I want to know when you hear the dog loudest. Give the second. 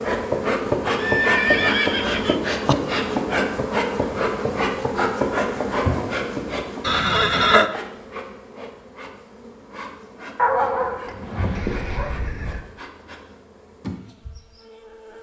11 s.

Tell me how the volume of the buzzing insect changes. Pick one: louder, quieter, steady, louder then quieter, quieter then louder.
quieter.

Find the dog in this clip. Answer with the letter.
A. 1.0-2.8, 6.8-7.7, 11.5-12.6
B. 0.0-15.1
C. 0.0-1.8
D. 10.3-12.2
D.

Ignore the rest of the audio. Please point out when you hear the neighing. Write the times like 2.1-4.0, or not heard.
1.0-2.8, 6.8-7.7, 11.5-12.6.